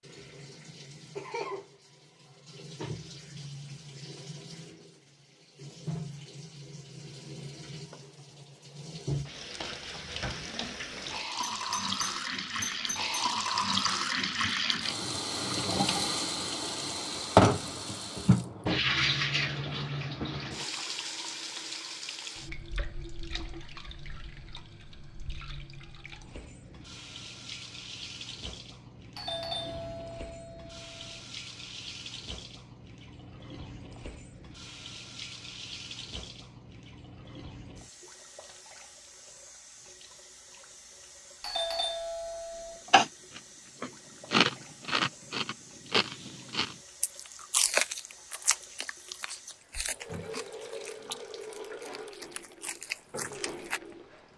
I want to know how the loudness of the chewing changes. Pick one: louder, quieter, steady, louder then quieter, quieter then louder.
quieter.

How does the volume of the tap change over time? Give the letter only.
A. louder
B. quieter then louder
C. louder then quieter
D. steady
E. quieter
C.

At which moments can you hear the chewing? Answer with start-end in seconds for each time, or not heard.
42.9-53.8.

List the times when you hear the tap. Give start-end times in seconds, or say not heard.
0.0-54.3.